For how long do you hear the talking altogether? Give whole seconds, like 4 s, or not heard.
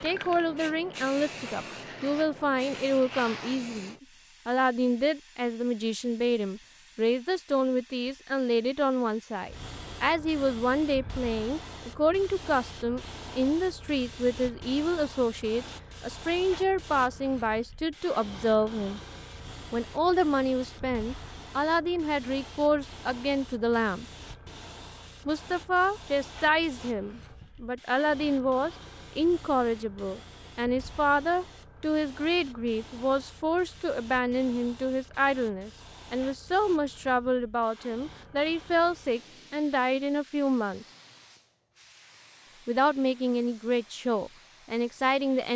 42 s.